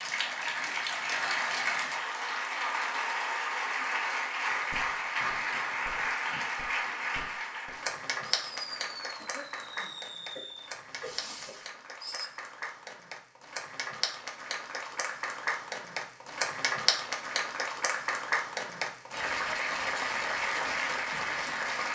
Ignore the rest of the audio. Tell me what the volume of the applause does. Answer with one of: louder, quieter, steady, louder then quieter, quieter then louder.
quieter then louder.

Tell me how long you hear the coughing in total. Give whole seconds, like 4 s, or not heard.
3 s.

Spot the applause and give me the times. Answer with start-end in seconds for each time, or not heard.
0.0-21.8.